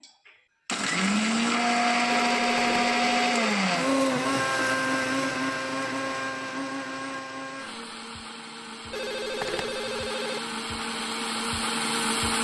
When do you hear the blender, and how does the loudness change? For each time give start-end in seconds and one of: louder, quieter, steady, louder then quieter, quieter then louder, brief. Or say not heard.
0.0-12.3 quieter then louder.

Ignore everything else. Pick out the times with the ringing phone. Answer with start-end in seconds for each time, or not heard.
2.0-3.5, 8.9-10.4.